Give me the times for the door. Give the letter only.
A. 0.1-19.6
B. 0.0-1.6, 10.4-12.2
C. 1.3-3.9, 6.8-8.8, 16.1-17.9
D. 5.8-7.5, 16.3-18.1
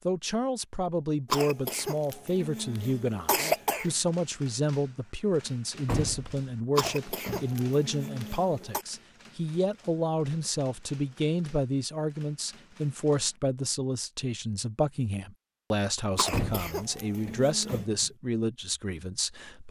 D.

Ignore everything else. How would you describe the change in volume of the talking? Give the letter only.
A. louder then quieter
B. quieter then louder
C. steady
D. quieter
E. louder
C.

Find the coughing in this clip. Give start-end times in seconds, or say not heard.
1.3-3.9, 6.8-8.8, 16.1-17.9.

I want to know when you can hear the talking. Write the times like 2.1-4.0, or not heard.
0.1-19.6.